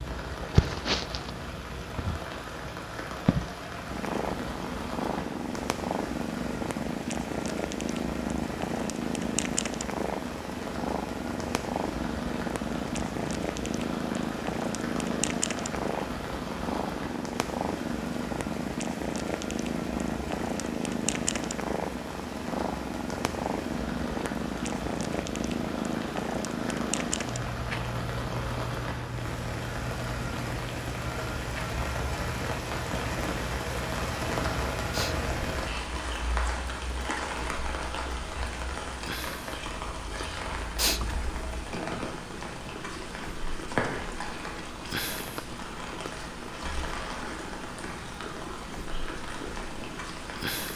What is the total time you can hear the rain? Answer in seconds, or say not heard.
51 s.